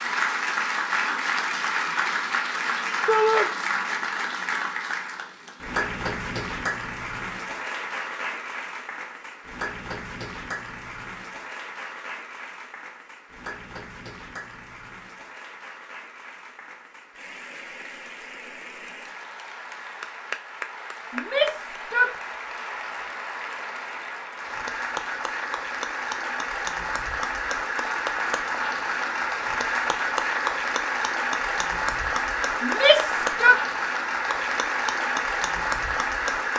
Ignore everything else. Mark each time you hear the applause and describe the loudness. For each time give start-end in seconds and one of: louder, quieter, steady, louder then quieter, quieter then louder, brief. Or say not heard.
0.0-36.5 quieter then louder.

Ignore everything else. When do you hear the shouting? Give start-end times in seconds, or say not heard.
3.0-3.5, 21.1-22.1, 32.6-33.6.